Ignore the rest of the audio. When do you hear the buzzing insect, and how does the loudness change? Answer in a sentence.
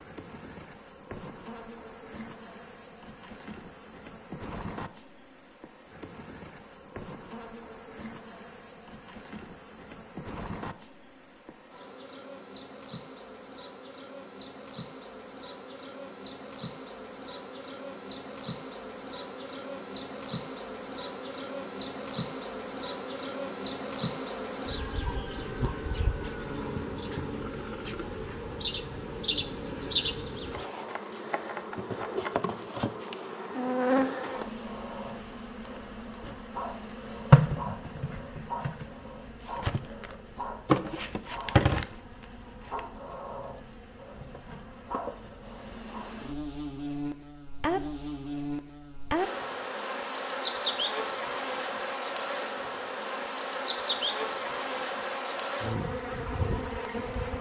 The buzzing insect can be heard from 0.0 to 57.3 s, getting louder.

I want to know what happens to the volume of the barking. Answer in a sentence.
The volume of the barking stays about the same.